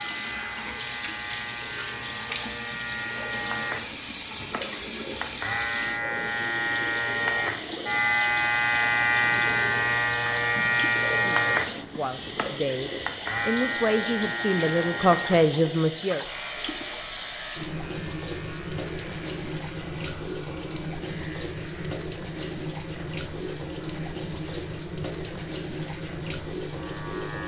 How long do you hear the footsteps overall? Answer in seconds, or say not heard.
not heard.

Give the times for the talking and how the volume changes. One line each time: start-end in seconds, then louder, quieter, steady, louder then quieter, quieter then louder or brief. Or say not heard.
11.1-16.2 louder.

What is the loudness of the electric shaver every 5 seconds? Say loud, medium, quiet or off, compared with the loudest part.
medium, loud, loud, quiet, quiet, quiet.